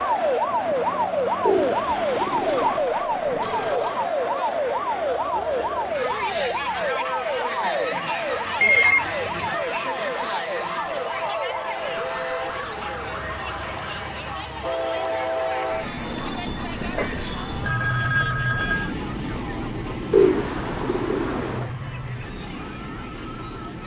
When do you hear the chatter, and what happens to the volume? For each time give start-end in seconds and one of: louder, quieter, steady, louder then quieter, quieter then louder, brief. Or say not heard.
0.0-23.8 quieter.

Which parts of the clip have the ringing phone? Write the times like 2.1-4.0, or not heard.
2.3-4.0, 8.6-9.2, 17.6-18.9.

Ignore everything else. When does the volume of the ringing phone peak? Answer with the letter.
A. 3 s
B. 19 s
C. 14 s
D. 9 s
D.